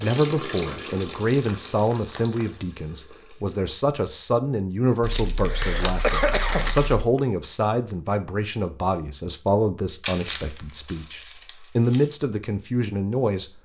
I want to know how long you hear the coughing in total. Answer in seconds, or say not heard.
2 s.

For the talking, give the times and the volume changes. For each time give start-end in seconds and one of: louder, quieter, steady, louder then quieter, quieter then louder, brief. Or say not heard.
0.0-13.5 steady.